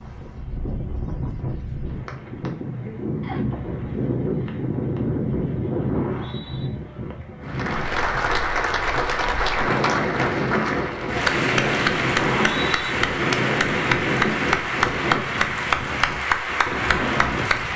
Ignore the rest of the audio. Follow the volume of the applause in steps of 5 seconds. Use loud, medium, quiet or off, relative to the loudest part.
off, loud, loud, loud.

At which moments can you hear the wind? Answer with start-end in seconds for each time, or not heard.
0.0-17.7.